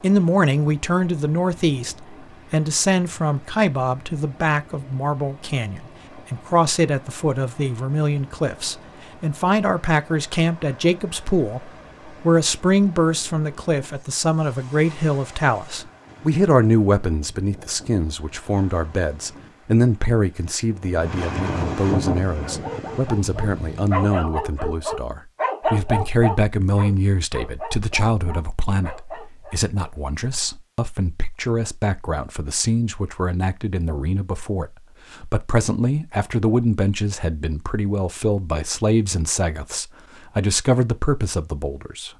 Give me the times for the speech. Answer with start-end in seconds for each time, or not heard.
0.0-42.1.